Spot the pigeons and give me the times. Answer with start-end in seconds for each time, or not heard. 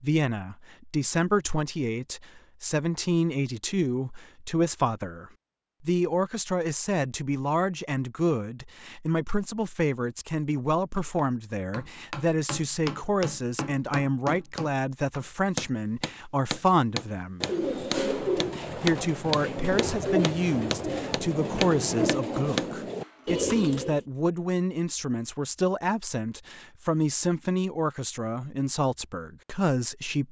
17.4-24.0.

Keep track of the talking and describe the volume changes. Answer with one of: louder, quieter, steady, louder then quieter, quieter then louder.
steady.